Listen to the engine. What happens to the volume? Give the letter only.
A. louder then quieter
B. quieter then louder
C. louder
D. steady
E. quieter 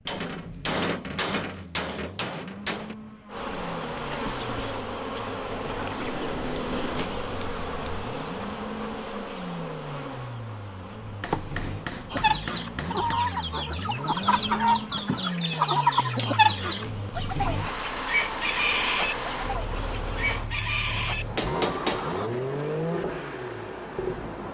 C.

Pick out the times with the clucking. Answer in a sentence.
You can hear the clucking from 12.1 to 22.3 s.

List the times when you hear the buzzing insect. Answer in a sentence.
You can hear the buzzing insect from 3.2 to 20.5 s.